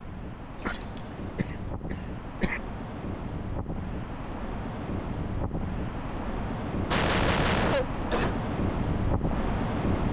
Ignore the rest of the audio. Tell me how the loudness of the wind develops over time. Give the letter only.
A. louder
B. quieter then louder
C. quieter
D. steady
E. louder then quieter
A.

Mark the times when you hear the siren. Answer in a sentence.
You can't hear the siren here.